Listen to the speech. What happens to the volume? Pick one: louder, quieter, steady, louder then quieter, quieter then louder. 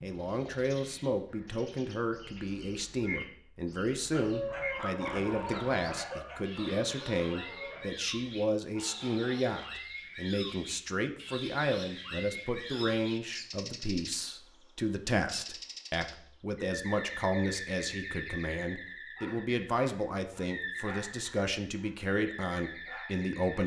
steady.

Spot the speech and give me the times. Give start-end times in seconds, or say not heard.
0.0-23.6.